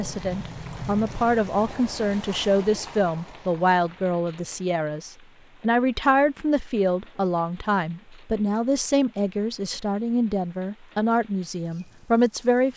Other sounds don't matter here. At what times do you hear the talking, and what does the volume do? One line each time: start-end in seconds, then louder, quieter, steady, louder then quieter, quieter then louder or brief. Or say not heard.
0.0-12.7 steady.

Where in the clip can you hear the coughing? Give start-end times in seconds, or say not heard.
not heard.